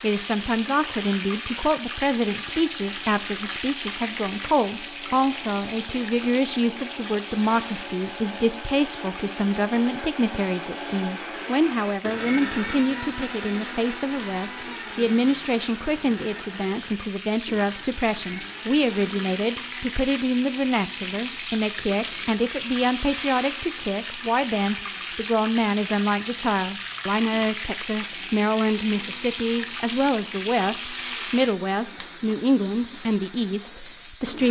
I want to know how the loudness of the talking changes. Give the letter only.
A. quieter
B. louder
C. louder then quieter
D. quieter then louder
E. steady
E.